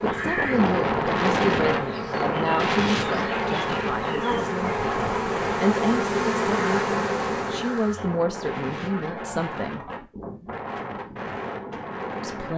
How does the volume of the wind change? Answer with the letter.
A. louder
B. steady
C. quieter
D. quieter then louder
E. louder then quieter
C.